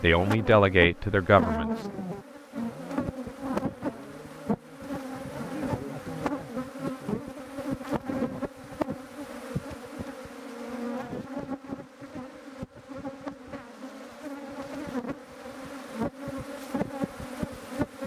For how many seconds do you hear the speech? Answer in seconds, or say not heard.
2 s.